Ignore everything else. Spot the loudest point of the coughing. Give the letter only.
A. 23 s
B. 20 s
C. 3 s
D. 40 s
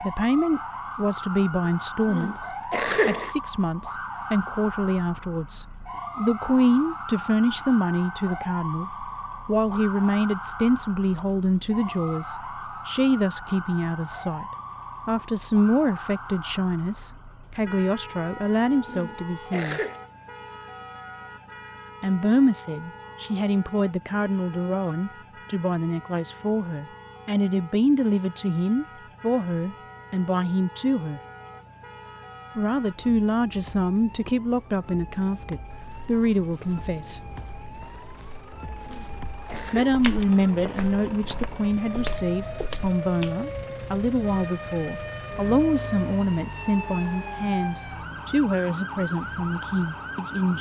C.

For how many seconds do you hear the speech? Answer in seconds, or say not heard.
44 s.